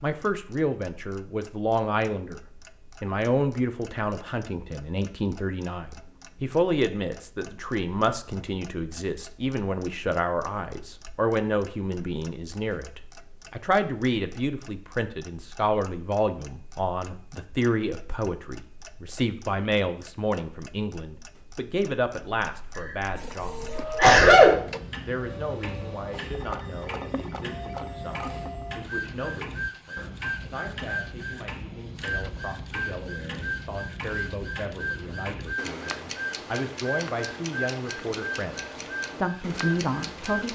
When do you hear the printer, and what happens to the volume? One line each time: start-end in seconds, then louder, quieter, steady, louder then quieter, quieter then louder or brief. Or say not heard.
23.1-40.5 steady.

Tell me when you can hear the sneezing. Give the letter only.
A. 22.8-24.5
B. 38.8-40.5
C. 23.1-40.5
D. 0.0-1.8
A.